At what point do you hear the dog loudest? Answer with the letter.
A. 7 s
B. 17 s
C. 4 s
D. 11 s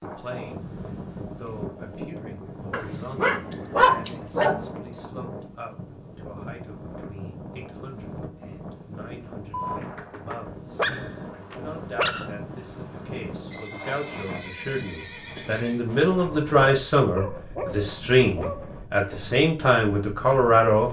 C.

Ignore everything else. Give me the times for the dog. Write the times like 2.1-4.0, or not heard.
2.7-4.7, 9.5-12.3, 16.3-18.8.